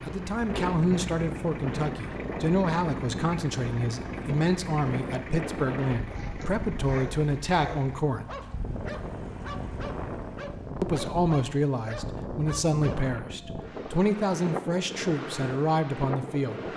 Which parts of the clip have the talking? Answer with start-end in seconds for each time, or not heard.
0.1-8.3, 10.8-16.6.